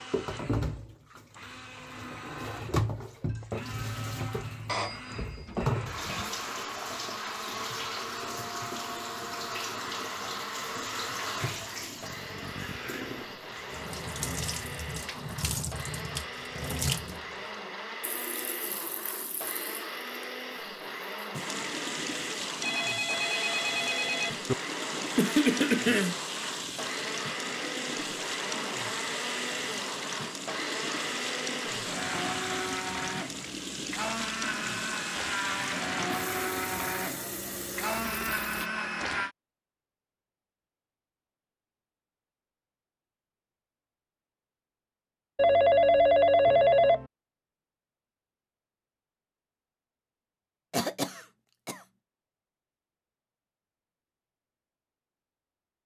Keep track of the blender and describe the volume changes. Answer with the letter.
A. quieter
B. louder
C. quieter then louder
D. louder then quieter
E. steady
B.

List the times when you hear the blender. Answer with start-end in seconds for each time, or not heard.
0.0-39.4.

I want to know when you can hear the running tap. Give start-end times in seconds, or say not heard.
0.0-38.7.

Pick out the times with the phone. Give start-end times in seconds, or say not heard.
4.7-6.3, 22.6-24.6, 45.4-47.0.